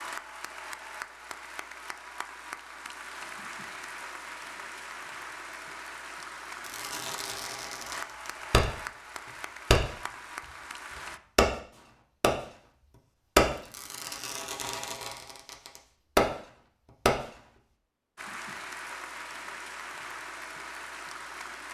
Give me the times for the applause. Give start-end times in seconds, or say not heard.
0.0-11.2, 18.1-21.6.